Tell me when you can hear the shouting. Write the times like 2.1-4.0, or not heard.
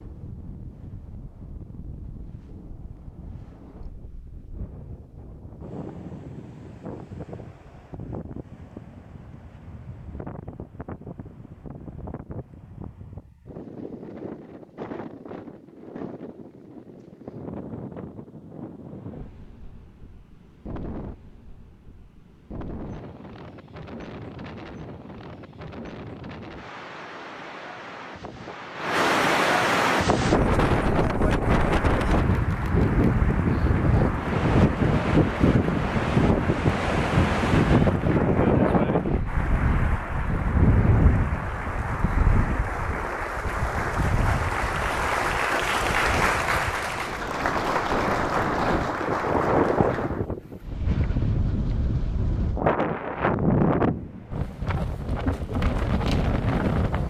not heard.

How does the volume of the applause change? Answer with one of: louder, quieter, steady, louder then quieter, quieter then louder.
louder.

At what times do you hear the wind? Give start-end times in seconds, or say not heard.
0.0-57.0.